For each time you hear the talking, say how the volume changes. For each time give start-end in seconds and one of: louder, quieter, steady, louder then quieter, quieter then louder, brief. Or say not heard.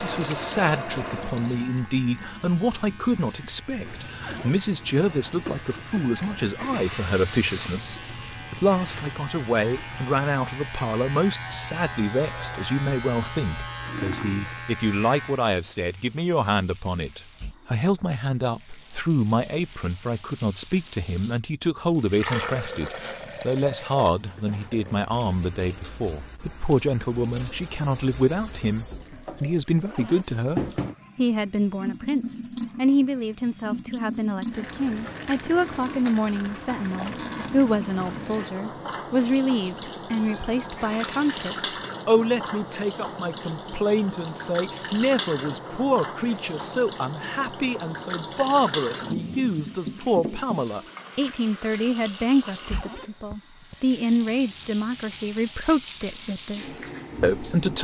0.0-57.8 steady.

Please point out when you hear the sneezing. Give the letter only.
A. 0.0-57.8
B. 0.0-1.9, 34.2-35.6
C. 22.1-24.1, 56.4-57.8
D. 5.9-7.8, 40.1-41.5
D.